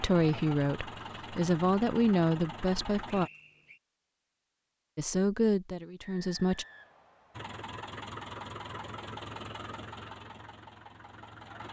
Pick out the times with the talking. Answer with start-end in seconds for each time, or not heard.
0.0-3.3, 5.0-6.7.